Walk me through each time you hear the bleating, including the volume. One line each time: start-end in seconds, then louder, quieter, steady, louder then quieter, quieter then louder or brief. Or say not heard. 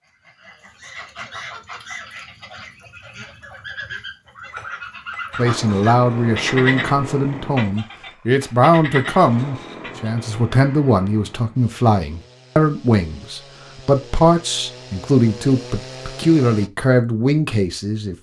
not heard.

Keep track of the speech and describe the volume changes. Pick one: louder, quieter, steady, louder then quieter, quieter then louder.
steady.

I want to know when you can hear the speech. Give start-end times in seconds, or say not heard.
5.3-18.1.